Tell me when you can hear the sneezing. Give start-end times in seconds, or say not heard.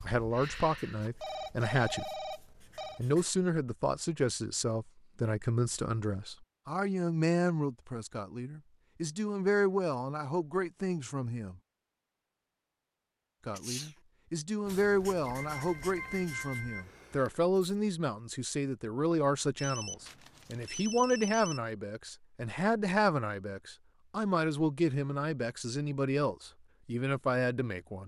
13.5-13.9.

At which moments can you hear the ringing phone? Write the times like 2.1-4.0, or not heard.
0.3-3.0, 15.2-16.9, 19.6-21.6.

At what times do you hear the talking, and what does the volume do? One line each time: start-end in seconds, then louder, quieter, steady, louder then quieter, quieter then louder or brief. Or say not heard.
0.0-2.2 brief
3.0-11.6 steady
13.4-28.0 steady.